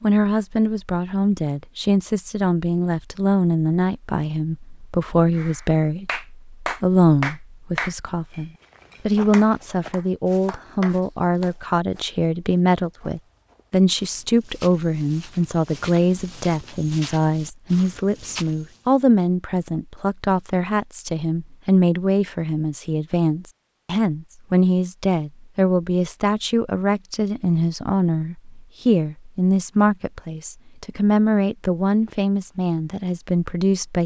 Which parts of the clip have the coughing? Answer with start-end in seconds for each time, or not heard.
not heard.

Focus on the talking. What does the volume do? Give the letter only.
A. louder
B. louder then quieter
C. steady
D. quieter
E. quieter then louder
C.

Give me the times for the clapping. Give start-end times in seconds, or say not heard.
5.3-11.5.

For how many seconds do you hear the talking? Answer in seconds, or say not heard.
34 s.